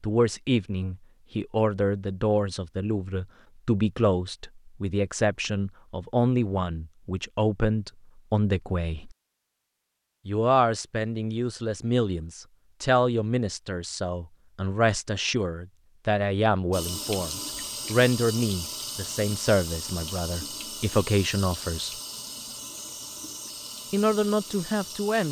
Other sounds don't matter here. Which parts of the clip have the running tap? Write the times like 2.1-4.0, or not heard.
16.7-25.2.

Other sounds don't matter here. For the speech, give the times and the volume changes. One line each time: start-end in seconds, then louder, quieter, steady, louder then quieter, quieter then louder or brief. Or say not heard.
0.0-9.2 steady
10.2-21.9 steady
23.9-25.2 brief.